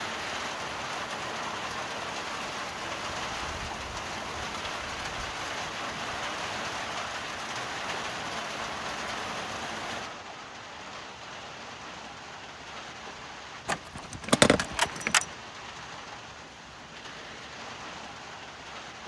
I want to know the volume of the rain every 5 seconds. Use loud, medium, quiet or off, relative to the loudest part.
loud, loud, medium, medium.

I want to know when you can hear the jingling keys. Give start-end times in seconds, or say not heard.
13.7-15.2.